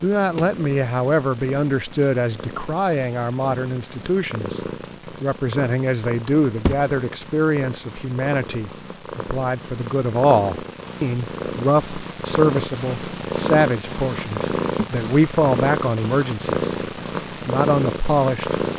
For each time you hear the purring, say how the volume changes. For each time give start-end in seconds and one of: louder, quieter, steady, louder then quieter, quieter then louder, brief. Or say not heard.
0.0-18.7 louder.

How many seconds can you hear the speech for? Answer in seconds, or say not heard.
17 s.